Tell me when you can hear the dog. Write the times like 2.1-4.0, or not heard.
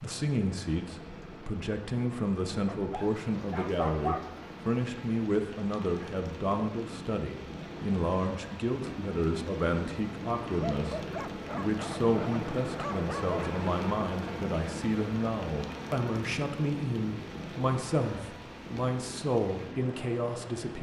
2.6-4.3, 10.6-13.6.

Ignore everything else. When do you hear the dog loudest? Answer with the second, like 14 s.
4 s.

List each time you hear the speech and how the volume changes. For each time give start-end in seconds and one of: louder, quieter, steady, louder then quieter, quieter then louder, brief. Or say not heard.
0.0-20.7 steady.